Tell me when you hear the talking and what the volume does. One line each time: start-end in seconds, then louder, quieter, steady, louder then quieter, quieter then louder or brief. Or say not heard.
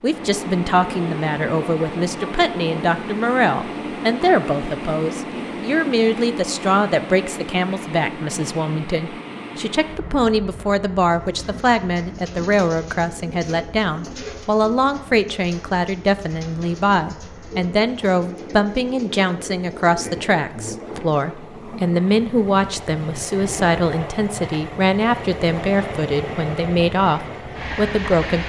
0.0-28.4 steady.